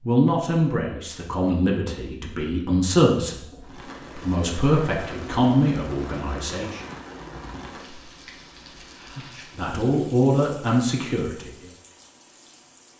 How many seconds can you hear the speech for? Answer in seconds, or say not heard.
9 s.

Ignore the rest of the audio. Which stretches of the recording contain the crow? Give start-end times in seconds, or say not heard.
not heard.